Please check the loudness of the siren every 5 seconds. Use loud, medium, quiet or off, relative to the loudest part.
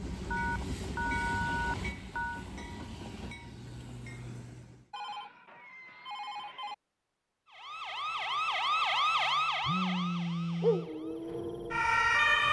off, loud, loud.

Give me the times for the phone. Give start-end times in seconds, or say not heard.
0.3-2.5, 4.9-6.8, 9.6-10.9.